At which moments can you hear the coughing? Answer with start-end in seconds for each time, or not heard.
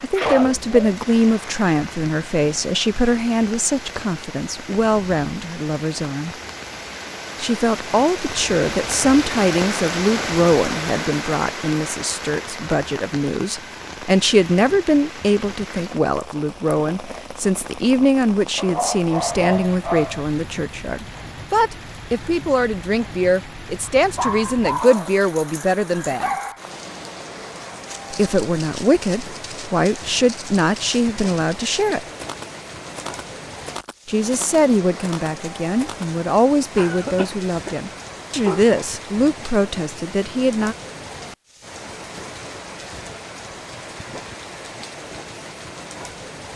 36.8-37.8.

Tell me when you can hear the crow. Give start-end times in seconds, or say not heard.
not heard.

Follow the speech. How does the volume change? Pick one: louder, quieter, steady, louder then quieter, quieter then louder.
steady.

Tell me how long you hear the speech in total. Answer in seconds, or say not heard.
36 s.